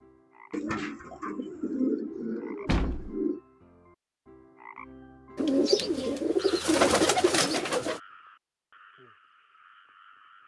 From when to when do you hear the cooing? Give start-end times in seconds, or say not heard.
0.5-3.4, 5.3-8.0.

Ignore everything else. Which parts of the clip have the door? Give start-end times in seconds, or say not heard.
2.6-3.2.